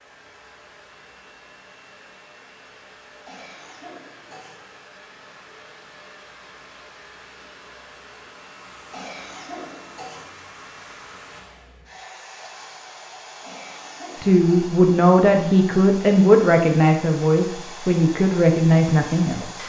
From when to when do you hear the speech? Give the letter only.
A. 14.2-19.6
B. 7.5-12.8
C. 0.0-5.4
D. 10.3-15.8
A.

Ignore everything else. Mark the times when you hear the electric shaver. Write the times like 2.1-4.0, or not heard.
not heard.